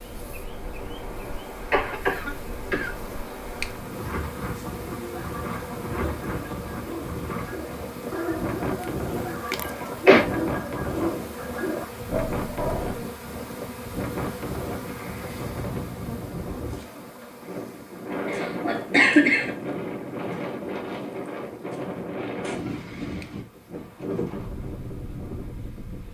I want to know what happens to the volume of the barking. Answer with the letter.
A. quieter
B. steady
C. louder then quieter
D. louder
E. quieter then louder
D.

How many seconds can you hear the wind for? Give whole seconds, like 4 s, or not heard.
26 s.